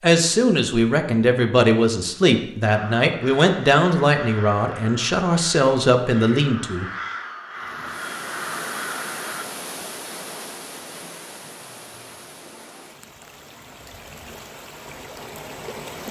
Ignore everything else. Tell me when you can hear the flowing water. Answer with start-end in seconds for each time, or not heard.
7.5-16.0.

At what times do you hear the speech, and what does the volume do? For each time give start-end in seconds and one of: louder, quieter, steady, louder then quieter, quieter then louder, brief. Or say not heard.
0.0-6.8 steady.